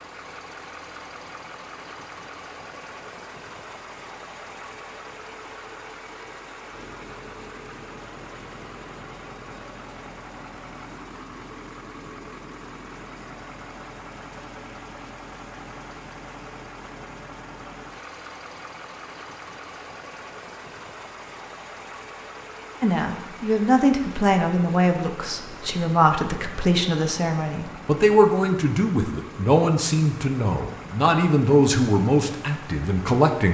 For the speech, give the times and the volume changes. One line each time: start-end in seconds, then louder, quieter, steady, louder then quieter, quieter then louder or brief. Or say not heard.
22.8-33.5 steady.